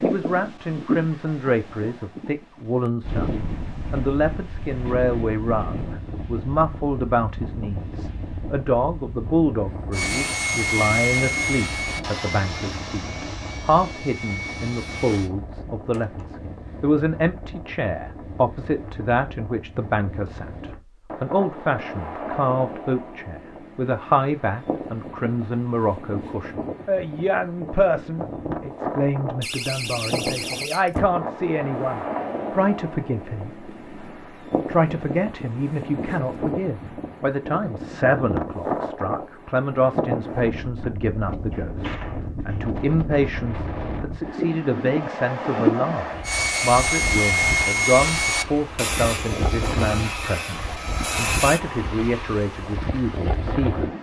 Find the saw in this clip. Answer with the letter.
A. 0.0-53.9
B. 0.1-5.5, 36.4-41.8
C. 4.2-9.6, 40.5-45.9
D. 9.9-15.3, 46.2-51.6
D.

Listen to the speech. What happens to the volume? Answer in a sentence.
The loudness of the speech stays about the same.